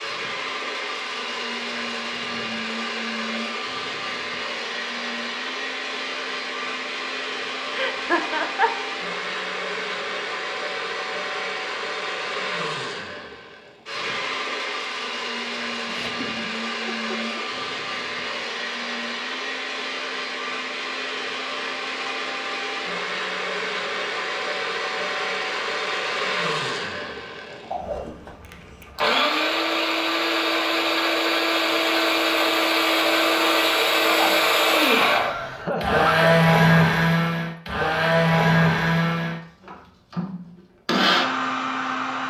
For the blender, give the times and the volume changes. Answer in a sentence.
You can hear the blender from 0.0 to 42.2 s, getting louder.